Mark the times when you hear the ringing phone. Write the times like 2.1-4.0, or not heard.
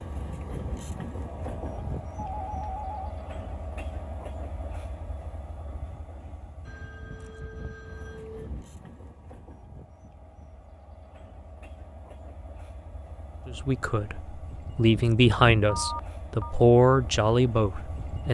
1.2-3.0, 6.7-8.7, 15.7-16.6.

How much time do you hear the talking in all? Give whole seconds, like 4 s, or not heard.
5 s.